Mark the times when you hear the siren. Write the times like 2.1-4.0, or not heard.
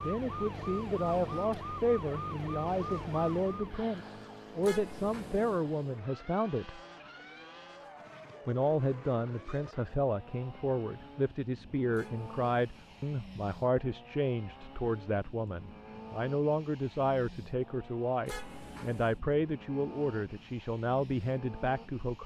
0.0-5.8.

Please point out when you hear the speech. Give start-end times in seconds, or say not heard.
0.0-6.8, 8.4-22.2.